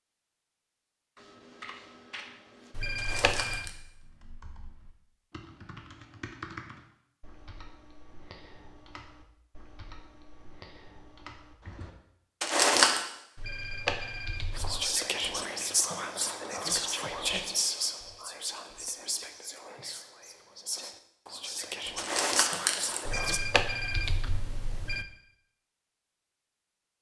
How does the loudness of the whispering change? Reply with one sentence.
The volume of the whispering goes down, then up.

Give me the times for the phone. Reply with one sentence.
The phone can be heard from 2.7 to 3.7 s, from 13.3 to 14.8 s and from 23.1 to 25.1 s.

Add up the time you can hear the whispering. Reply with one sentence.
The whispering can be heard for 9 seconds in total.